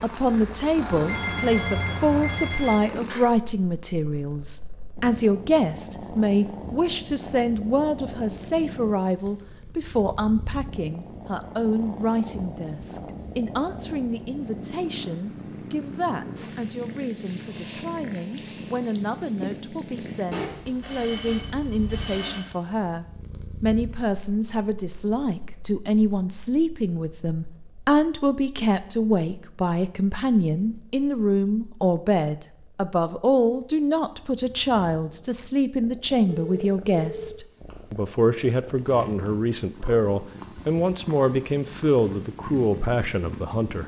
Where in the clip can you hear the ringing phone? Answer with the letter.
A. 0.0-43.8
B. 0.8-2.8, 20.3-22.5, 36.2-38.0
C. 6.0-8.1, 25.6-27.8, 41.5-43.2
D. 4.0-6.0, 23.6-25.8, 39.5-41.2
B.